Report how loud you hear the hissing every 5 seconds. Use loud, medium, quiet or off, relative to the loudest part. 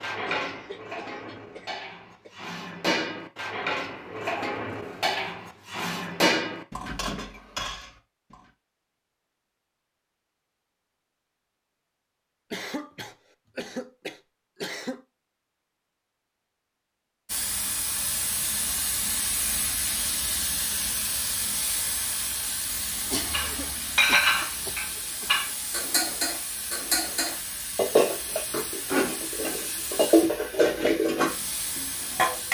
off, off, off, loud, loud, medium, medium.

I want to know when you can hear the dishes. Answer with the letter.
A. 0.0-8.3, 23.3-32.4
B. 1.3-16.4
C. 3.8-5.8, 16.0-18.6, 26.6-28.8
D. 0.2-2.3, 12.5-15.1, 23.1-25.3
A.